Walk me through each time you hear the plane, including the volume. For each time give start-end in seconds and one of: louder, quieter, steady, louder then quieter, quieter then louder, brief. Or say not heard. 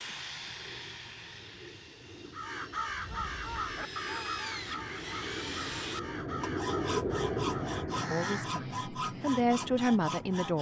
0.0-10.5 louder then quieter.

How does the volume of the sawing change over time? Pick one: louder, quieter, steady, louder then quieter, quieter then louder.
louder.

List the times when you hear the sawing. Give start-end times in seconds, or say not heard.
0.0-10.5.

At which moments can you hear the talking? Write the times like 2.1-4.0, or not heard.
8.1-10.5.